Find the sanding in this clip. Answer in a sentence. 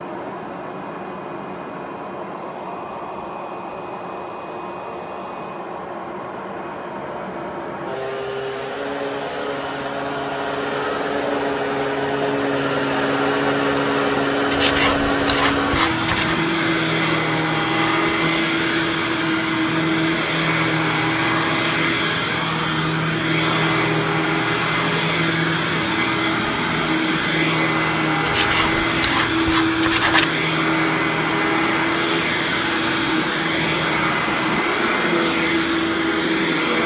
You can hear the sanding from 14.5 to 16.4 s and from 28.2 to 30.2 s.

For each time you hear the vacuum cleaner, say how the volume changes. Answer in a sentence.
The vacuum cleaner can be heard from 0.0 to 36.8 s, getting louder.